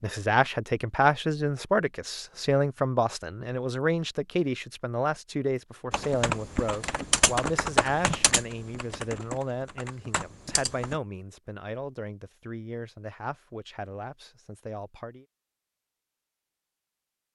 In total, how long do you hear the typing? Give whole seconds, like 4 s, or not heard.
5 s.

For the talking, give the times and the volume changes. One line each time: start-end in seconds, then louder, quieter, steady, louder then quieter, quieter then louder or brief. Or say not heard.
0.0-15.2 quieter.